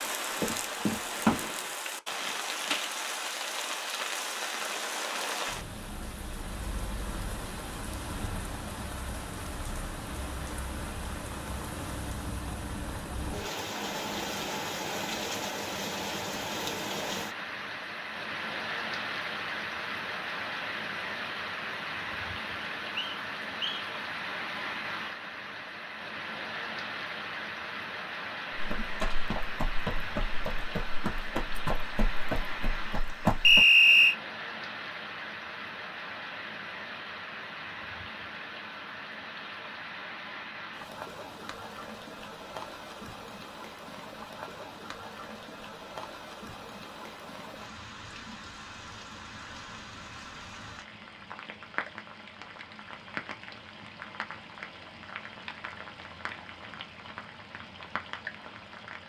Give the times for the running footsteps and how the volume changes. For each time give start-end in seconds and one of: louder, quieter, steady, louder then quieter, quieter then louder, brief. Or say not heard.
0.0-1.4 brief
28.6-33.6 quieter.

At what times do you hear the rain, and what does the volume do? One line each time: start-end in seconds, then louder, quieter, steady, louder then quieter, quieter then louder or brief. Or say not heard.
0.0-59.0 quieter.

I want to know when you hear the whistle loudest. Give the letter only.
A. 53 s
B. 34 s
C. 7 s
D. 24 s
B.